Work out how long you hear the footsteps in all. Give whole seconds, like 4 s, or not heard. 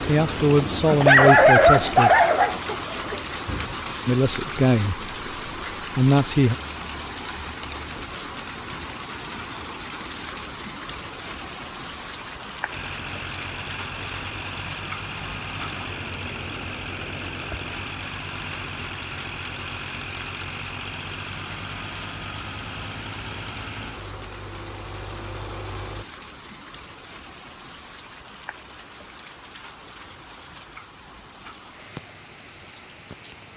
not heard.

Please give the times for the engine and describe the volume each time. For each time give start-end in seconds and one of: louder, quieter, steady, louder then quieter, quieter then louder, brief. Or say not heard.
12.7-26.1 steady.